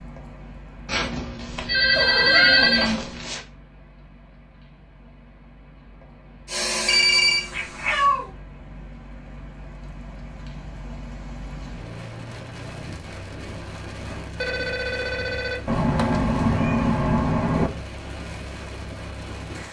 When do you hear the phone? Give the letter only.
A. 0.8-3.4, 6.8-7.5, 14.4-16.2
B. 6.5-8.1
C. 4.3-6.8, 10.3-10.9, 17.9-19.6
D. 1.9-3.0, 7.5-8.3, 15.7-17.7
A.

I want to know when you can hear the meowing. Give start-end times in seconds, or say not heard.
1.9-3.0, 7.5-8.3, 15.7-17.7.